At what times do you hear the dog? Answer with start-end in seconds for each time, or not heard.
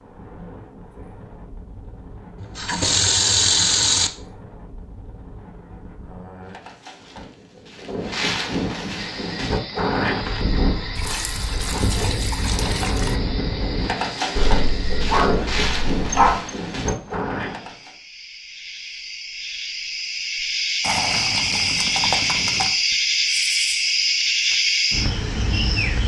14.3-16.4.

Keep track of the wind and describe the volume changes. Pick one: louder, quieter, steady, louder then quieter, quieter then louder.
louder.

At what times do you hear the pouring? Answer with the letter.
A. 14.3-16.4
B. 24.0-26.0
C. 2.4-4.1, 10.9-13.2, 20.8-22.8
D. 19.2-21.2
C.